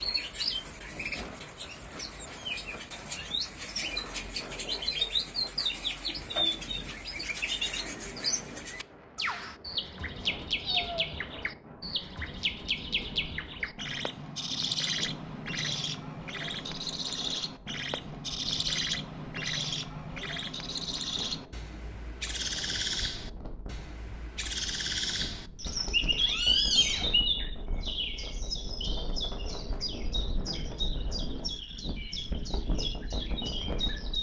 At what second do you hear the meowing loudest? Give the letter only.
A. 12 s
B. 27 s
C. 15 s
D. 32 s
B.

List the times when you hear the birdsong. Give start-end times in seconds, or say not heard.
0.0-34.1.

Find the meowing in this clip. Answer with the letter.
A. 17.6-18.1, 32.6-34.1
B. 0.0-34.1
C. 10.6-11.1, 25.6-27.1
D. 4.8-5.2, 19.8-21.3
C.